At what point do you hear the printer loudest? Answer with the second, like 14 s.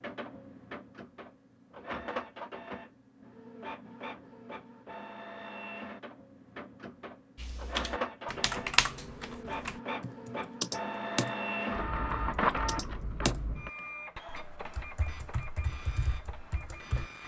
12 s.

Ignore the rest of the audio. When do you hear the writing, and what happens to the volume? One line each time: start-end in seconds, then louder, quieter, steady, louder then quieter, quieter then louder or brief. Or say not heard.
not heard.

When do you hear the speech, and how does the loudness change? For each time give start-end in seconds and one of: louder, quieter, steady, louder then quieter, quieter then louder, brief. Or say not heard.
not heard.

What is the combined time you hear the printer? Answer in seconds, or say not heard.
17 s.